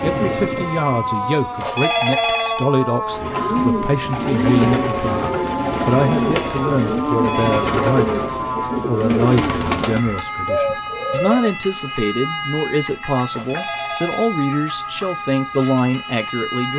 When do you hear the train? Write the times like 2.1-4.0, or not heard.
0.0-1.7.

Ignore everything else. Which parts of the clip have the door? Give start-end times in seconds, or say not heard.
not heard.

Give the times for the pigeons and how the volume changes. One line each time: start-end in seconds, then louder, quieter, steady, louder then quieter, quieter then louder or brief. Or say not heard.
3.0-11.6 steady.